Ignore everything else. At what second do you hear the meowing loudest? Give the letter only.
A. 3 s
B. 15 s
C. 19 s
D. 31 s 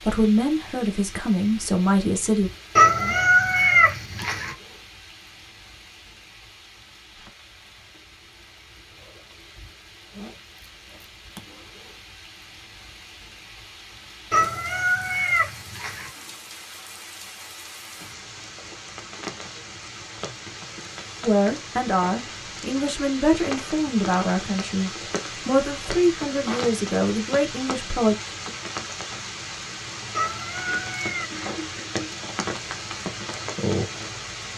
A.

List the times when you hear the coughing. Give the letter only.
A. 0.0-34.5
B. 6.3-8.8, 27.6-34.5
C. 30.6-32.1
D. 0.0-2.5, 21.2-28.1
C.